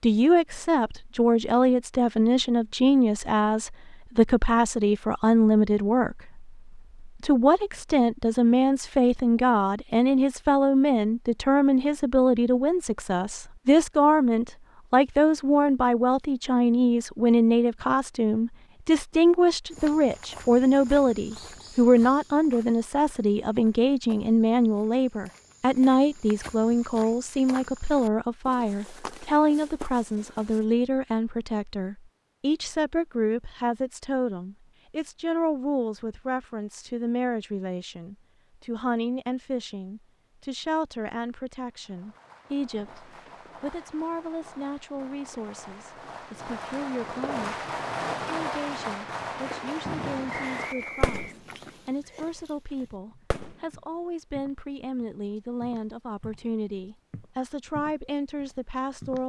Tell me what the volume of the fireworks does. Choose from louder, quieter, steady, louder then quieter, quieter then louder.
louder.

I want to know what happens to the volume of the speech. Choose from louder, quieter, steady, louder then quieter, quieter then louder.
quieter.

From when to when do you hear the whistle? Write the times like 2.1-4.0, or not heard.
50.3-51.4.